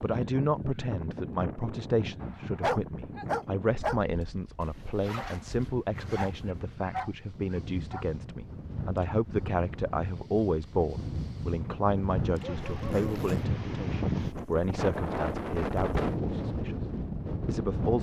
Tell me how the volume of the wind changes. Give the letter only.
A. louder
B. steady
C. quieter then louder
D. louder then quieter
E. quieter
C.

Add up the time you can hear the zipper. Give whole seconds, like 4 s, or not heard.
3 s.